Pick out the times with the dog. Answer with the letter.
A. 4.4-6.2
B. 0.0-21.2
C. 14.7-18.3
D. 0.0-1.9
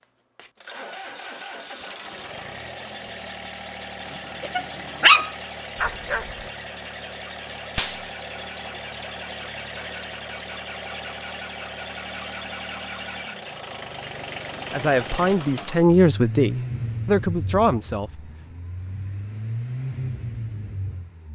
A.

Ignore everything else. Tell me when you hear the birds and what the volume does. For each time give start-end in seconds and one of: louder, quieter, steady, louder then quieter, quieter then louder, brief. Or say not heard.
not heard.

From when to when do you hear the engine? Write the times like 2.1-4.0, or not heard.
0.0-21.2.